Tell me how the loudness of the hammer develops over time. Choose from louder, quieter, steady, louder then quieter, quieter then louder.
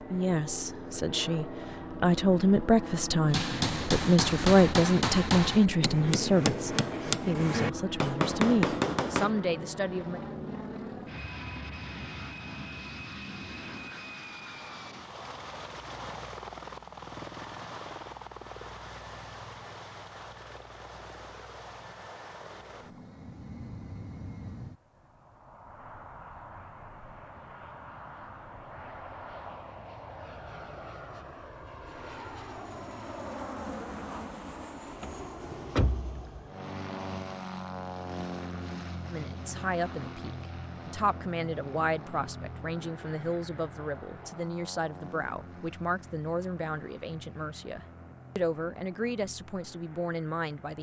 steady.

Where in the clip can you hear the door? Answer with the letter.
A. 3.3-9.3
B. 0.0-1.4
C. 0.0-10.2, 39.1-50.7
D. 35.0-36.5
D.